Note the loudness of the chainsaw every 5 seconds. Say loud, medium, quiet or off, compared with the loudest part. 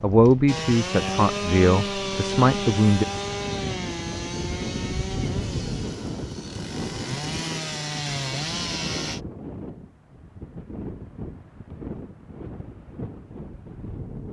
loud, loud, off.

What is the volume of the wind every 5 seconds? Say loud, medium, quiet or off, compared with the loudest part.
loud, loud, medium.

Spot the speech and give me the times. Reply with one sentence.
The speech can be heard from 0.0 to 3.0 s.